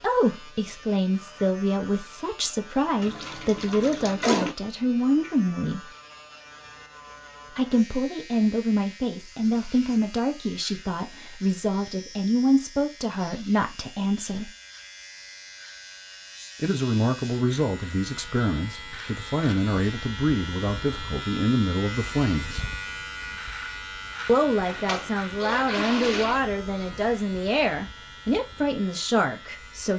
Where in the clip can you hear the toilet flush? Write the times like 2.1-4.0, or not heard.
3.0-4.5, 24.6-26.4.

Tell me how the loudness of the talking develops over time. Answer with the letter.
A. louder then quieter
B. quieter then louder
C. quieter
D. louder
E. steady
E.